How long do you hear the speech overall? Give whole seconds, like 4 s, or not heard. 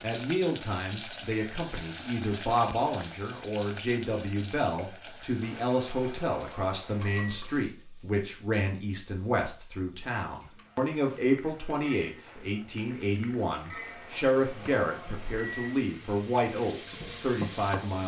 18 s.